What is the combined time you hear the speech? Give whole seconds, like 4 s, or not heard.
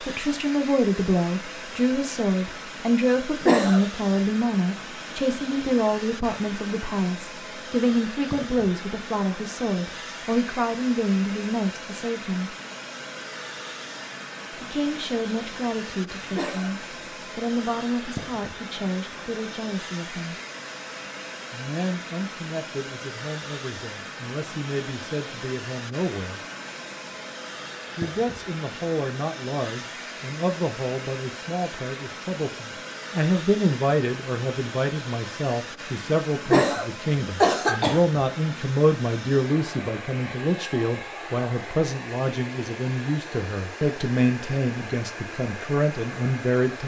42 s.